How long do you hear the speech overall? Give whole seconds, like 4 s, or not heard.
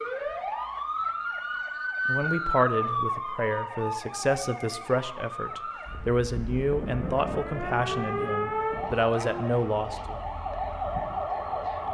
8 s.